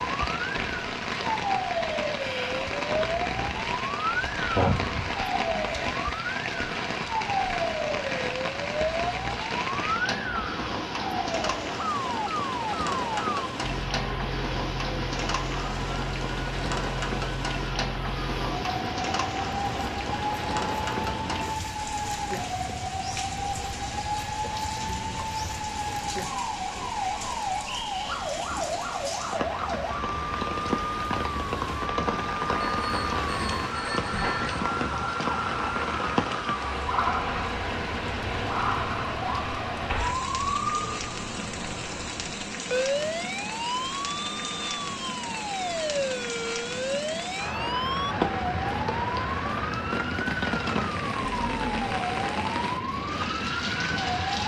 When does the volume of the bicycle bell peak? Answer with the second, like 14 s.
5 s.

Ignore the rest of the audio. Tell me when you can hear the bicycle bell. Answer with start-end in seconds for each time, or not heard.
4.5-5.2, 32.8-34.6.